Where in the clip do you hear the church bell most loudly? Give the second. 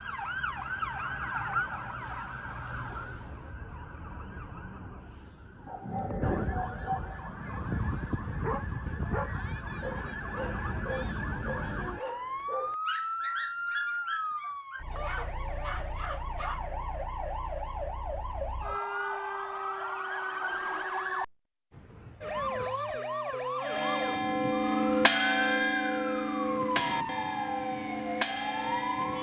25 s.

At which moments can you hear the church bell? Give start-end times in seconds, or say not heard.
23.6-29.1.